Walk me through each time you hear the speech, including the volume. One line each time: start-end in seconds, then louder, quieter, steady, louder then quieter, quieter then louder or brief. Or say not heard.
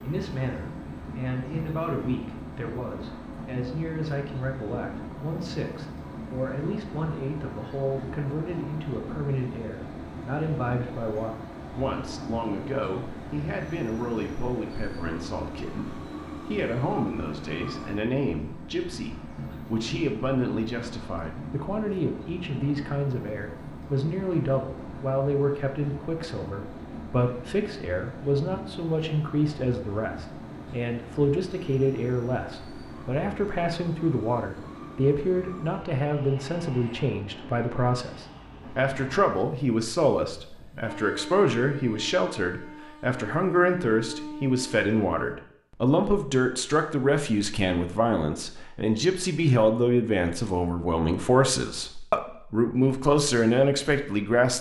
0.0-54.5 louder.